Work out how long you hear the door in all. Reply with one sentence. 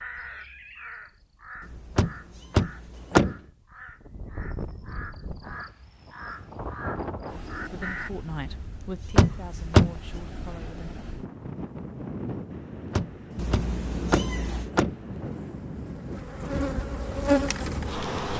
You can hear the door for 4 seconds altogether.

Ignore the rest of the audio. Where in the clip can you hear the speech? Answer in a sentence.
The speech can be heard from 7.7 to 10.9 s.